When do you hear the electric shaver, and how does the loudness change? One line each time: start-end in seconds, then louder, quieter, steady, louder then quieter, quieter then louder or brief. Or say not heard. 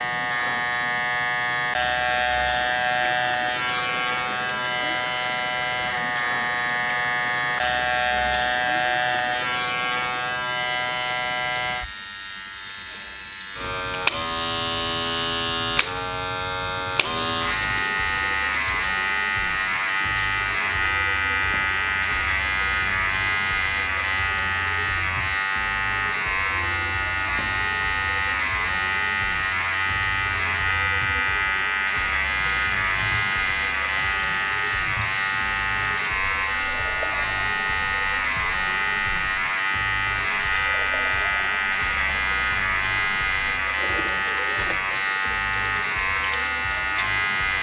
0.0-47.5 steady.